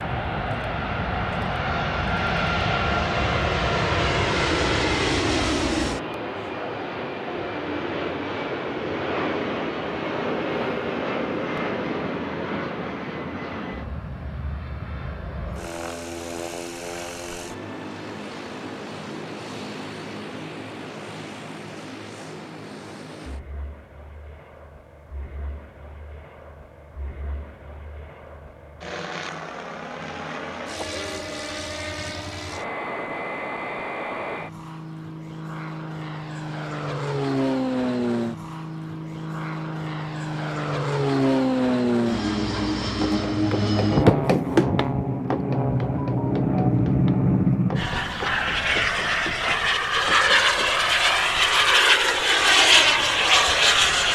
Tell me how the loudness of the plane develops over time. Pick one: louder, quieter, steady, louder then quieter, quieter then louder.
quieter then louder.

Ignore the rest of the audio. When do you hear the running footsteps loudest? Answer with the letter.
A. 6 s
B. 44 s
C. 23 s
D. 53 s
B.